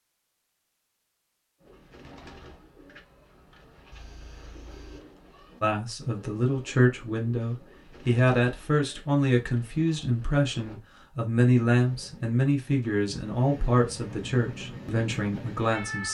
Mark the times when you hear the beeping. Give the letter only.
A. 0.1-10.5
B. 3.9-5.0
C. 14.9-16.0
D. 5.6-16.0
B.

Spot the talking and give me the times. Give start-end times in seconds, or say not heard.
5.6-16.0.